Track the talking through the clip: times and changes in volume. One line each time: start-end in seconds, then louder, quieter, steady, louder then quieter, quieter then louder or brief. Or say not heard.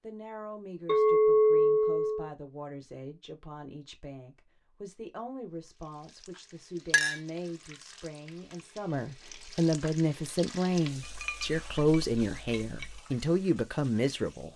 0.0-14.5 louder.